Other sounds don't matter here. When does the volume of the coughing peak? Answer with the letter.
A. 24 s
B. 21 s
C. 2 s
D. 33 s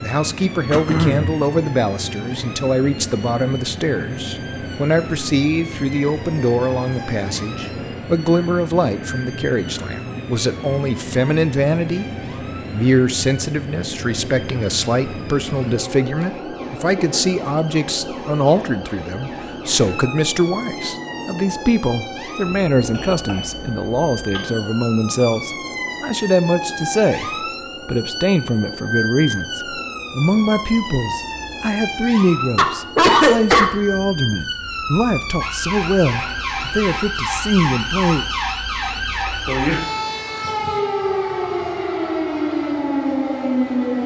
D.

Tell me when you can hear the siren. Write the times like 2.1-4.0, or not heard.
0.0-44.0.